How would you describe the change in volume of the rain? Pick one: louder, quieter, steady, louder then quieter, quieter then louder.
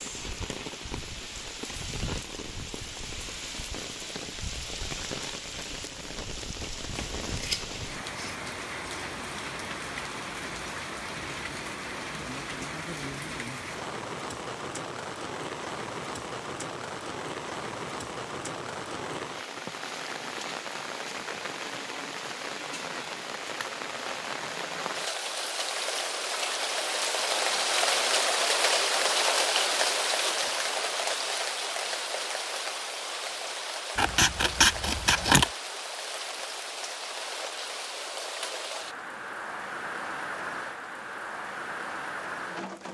louder then quieter.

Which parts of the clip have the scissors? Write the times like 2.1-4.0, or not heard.
6.6-8.3, 34.0-35.5.